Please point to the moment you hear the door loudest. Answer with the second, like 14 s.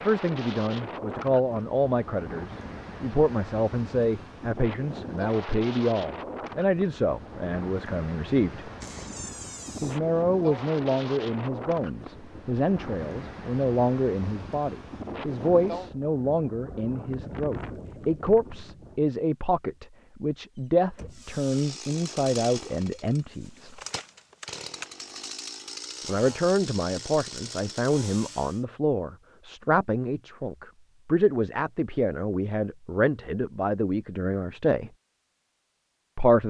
9 s.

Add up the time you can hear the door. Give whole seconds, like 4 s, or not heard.
2 s.